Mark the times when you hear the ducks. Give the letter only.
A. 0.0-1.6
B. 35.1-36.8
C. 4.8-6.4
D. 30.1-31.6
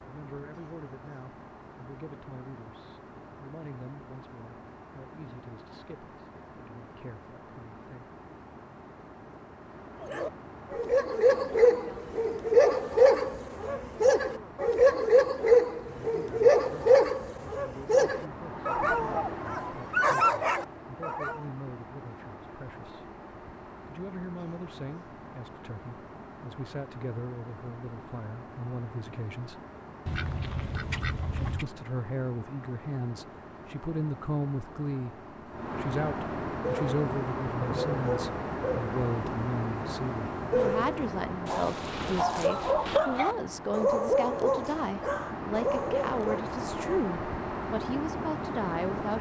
D.